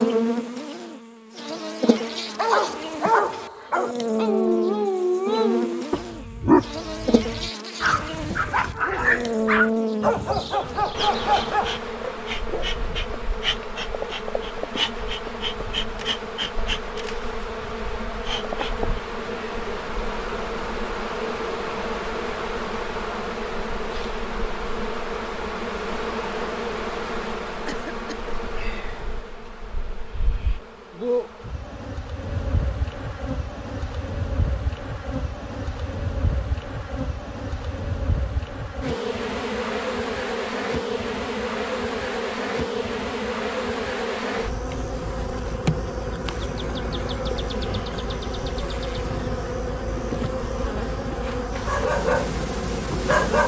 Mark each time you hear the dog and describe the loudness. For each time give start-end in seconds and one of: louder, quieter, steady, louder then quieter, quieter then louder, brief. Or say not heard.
1.9-12.7 steady
51.6-53.4 brief.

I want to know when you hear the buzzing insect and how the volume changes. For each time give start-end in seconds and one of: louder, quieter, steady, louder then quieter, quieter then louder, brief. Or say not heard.
0.0-53.4 steady.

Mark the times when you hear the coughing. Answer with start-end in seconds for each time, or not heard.
27.6-28.4.